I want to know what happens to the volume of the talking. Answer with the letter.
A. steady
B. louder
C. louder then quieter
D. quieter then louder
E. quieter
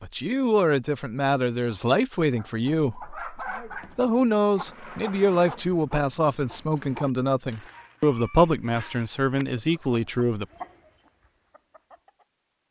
A.